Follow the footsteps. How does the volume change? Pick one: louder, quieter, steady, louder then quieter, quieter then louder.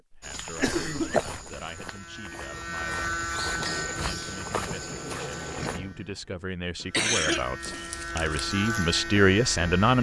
quieter then louder.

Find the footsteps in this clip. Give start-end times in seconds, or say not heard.
0.2-5.8.